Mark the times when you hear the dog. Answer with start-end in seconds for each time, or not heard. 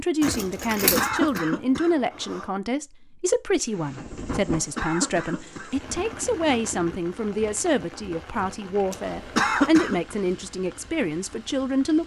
not heard.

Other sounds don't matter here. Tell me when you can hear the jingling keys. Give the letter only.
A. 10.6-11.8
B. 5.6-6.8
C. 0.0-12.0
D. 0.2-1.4
D.